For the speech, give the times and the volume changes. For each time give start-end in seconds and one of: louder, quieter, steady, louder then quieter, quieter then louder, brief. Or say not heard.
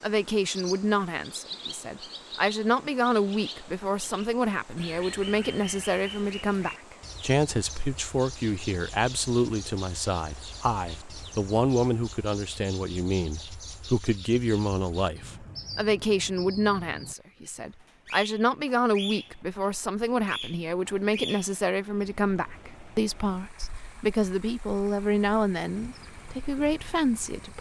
0.0-27.5 steady.